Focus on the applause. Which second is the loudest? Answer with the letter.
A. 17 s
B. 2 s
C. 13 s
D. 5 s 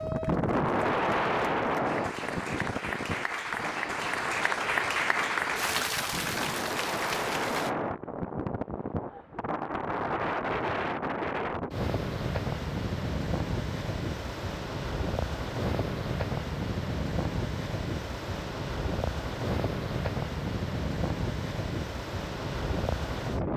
D.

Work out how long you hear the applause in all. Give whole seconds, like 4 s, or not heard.
8 s.